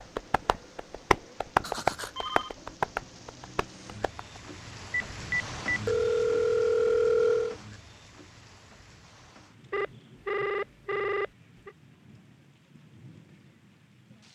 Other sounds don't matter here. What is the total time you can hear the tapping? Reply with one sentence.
You can hear the tapping for 4 seconds altogether.